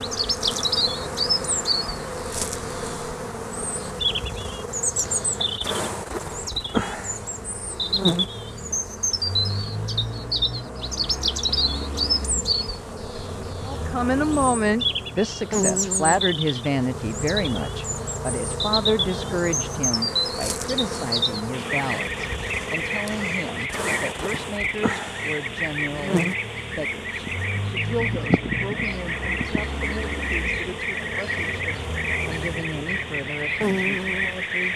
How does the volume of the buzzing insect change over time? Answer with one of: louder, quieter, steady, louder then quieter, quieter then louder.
steady.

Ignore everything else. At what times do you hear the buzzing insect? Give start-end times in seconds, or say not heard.
0.0-34.7.